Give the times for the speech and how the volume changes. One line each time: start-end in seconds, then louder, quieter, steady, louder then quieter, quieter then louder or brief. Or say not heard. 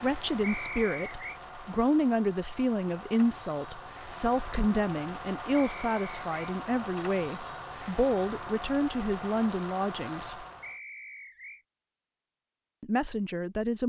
0.0-10.4 steady
12.8-13.8 brief.